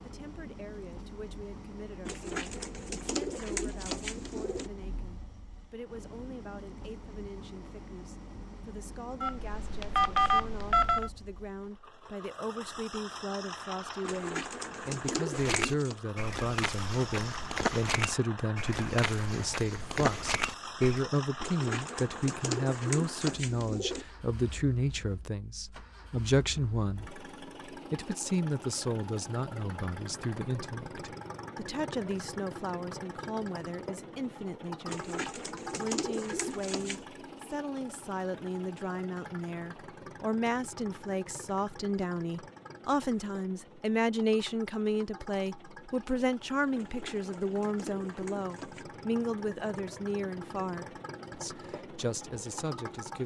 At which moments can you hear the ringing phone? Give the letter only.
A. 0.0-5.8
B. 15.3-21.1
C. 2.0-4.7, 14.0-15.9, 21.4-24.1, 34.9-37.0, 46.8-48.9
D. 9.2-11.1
D.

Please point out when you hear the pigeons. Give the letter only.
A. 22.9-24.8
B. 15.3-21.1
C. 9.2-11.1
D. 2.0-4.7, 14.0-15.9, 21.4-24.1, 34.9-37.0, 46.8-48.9
D.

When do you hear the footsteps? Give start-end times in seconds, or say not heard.
15.3-21.1.